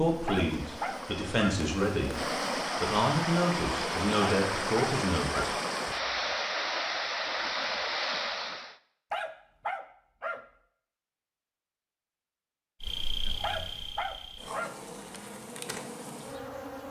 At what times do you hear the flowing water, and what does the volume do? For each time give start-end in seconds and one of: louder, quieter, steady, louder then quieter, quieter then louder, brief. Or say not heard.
0.0-8.8 louder.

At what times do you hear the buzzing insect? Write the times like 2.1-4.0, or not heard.
0.0-2.6, 12.8-16.8.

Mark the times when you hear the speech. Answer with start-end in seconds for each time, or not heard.
0.0-2.1, 2.8-5.5.